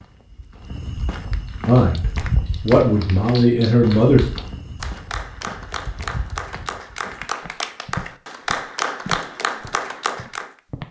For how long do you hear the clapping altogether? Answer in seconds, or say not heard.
9 s.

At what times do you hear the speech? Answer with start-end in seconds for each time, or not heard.
1.6-4.2.